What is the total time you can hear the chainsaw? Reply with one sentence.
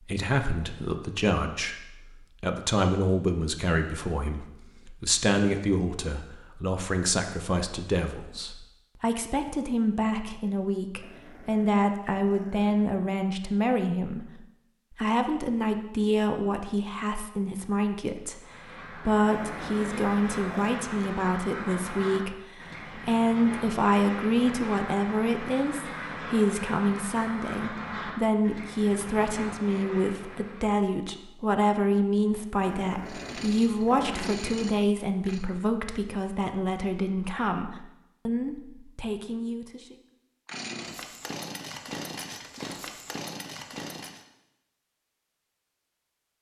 The chainsaw can be heard for 6 seconds in total.